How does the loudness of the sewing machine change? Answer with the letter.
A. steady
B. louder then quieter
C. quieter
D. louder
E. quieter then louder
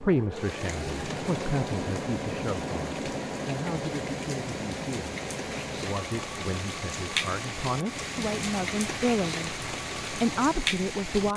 C.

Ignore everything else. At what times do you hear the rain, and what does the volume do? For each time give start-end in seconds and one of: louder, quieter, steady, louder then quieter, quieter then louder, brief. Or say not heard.
0.0-11.3 louder.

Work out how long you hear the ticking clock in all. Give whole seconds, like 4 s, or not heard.
not heard.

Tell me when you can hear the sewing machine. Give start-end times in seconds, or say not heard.
0.0-11.3.